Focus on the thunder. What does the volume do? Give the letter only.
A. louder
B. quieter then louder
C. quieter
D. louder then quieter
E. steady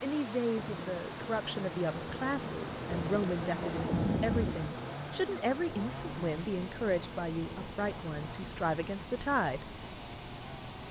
A.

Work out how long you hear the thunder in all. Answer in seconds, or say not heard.
4 s.